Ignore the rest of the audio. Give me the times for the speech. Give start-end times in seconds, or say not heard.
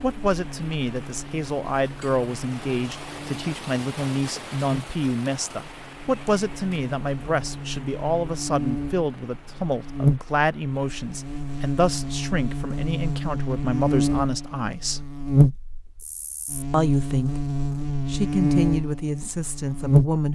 0.0-15.0, 16.7-20.2.